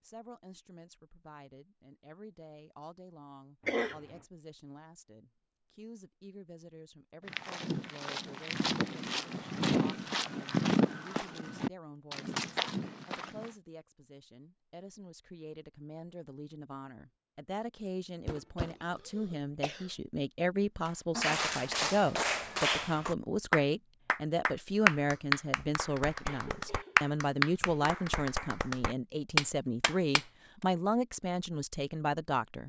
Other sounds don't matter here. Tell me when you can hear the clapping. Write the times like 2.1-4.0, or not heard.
20.9-30.2.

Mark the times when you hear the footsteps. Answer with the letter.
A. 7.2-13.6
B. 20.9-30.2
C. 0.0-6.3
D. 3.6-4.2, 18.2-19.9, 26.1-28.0
A.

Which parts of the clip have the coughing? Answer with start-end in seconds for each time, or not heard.
3.6-4.2, 18.2-19.9, 26.1-28.0.